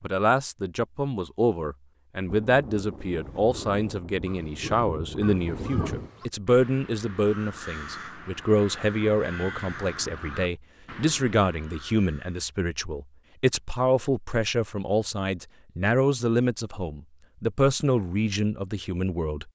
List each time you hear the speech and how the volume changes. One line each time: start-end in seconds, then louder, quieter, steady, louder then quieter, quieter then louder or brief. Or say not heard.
0.0-19.4 steady.